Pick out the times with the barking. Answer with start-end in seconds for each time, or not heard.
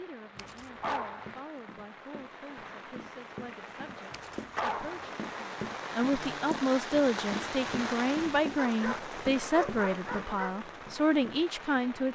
0.3-1.4, 4.1-5.1, 8.6-10.6.